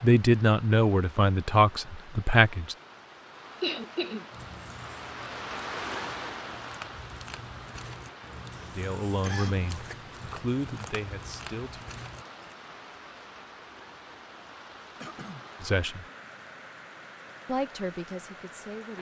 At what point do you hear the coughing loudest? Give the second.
4 s.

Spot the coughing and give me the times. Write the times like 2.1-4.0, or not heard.
3.6-4.2, 8.5-9.7, 15.0-15.4.